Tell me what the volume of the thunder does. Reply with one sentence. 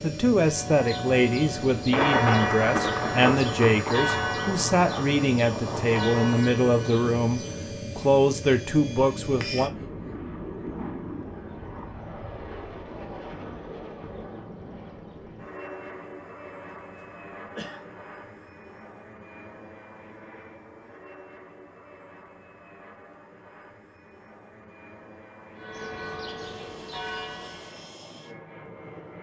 The loudness of the thunder goes down.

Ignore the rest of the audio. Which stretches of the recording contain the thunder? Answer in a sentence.
The thunder can be heard from 1.9 to 6.5 s.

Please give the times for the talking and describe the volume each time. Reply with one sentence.
You can hear the talking from 0.0 to 9.7 s, at a steady volume.